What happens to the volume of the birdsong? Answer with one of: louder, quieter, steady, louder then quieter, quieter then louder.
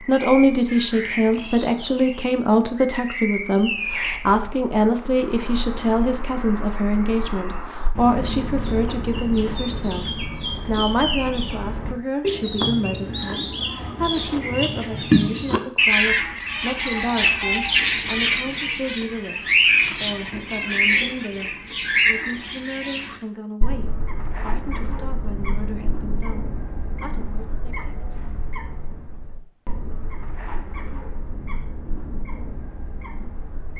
louder then quieter.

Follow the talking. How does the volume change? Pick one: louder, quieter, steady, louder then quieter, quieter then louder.
quieter.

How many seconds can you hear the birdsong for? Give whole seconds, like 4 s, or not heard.
34 s.